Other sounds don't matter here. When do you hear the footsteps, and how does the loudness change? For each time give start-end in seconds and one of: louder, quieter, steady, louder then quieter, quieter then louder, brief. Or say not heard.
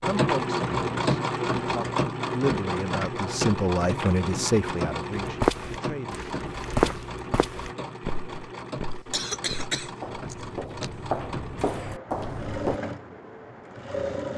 5.2-12.8 quieter then louder.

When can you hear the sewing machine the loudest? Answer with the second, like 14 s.
1 s.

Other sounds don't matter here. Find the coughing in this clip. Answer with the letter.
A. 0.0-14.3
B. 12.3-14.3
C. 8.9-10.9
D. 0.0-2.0
C.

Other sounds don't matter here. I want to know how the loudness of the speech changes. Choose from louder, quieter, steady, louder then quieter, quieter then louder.
louder then quieter.